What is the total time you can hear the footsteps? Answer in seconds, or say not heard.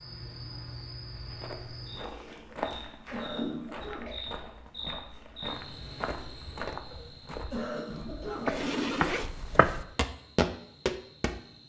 10 s.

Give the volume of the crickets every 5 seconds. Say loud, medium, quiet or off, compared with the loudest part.
loud, medium, quiet.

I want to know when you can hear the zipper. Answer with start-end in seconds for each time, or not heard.
8.5-9.8.